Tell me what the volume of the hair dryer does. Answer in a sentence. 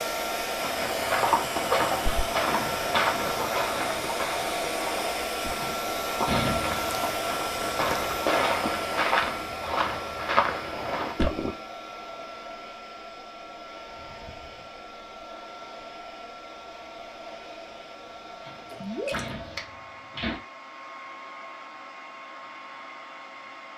The loudness of the hair dryer goes down.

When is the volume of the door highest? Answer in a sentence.
The volume of the door peaks at 6 seconds.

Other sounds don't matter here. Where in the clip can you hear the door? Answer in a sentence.
The door can be heard from 5.5 to 7.0 s and from 18.4 to 20.4 s.